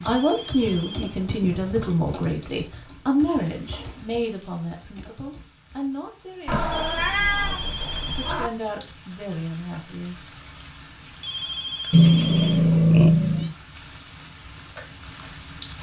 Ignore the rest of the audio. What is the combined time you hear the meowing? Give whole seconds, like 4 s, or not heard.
5 s.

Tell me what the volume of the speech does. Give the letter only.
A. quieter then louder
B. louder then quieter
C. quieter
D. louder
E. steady
A.